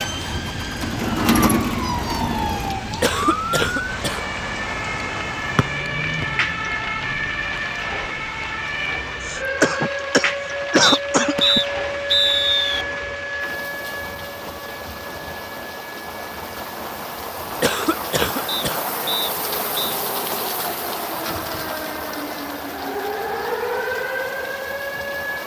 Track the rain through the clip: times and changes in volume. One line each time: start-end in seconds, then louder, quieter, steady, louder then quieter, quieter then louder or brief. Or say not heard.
0.0-25.4 steady.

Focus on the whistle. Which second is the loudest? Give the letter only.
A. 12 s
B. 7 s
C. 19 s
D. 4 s
A.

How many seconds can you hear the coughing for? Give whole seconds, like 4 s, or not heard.
5 s.